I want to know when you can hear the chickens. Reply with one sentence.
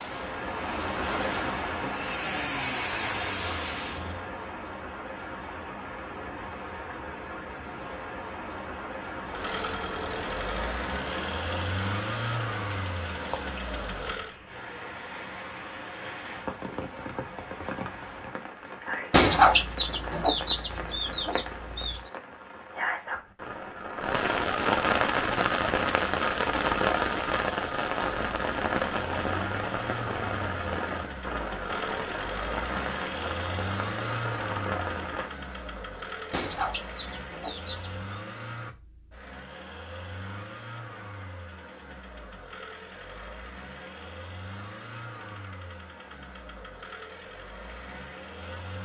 You can hear the chickens from 19.1 to 22.0 s and from 36.3 to 38.1 s.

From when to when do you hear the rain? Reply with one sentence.
The rain can be heard from 0.0 to 35.3 s.